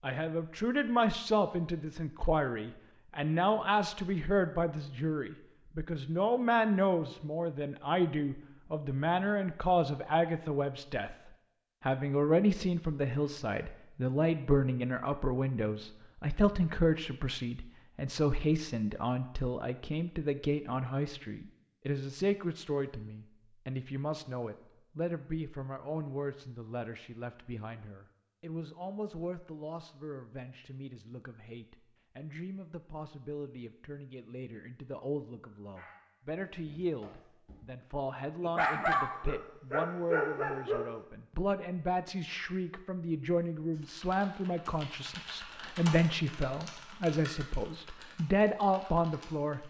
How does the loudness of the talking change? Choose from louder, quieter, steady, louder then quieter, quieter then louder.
quieter then louder.